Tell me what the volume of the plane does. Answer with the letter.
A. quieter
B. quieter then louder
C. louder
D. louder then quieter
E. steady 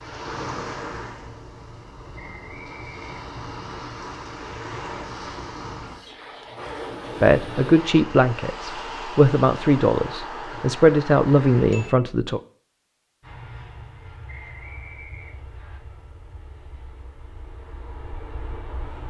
B.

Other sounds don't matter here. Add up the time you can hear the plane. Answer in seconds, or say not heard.
6 s.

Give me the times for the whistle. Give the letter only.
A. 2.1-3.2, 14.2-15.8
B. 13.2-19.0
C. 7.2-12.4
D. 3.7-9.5
A.